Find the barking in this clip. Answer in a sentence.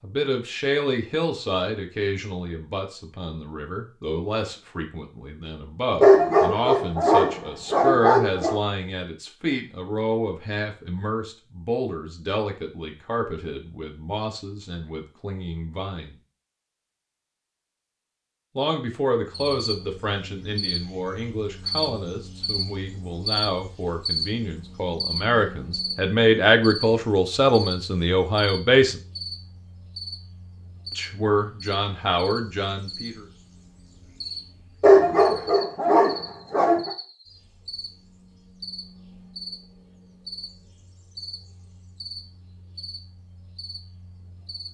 The barking can be heard from 6.0 to 8.6 s and from 34.8 to 36.9 s.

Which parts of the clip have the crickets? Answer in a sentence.
You can hear the crickets from 19.2 to 44.6 s.